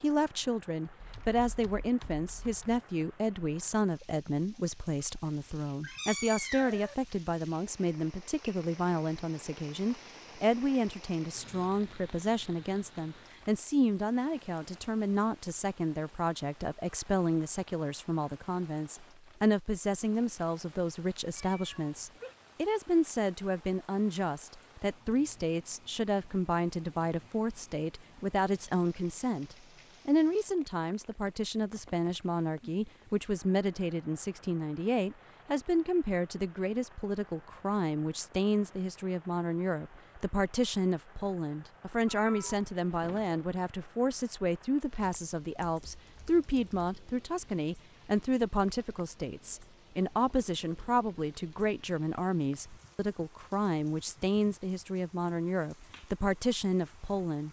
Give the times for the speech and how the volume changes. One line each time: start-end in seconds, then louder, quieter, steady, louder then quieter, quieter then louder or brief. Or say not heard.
0.0-57.4 steady.